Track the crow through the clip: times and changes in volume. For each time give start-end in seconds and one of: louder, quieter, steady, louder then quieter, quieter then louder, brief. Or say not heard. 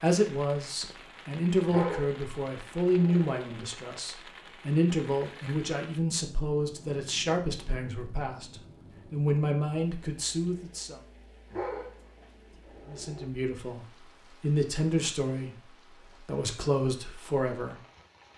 not heard.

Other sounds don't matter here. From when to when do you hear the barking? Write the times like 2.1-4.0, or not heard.
1.6-3.4, 11.5-13.3.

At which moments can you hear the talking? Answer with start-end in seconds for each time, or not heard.
0.0-11.0, 12.8-17.8.